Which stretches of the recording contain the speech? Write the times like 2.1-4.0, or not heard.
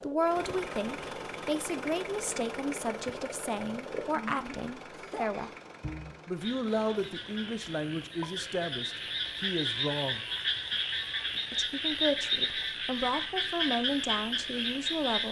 0.0-5.5, 6.2-10.2, 11.5-15.2.